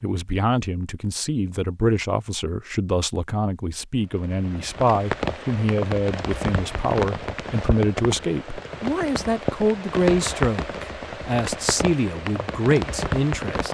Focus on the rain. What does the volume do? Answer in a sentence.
The volume of the rain stays about the same.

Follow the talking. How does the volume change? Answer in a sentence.
The volume of the talking stays about the same.